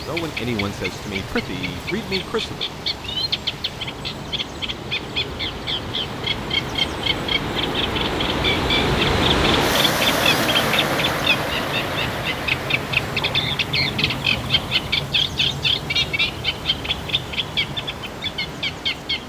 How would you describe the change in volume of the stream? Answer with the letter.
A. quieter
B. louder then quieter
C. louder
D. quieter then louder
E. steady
B.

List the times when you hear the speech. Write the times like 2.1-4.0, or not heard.
0.0-2.6.